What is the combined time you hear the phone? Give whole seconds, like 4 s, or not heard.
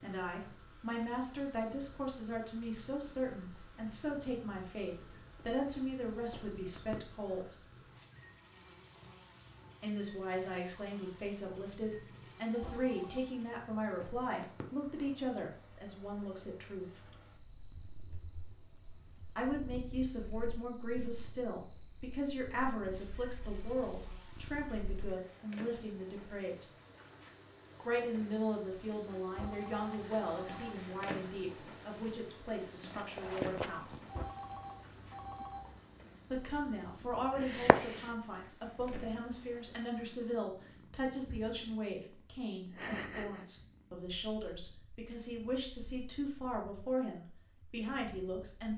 4 s.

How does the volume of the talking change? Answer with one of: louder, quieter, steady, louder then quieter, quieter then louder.
steady.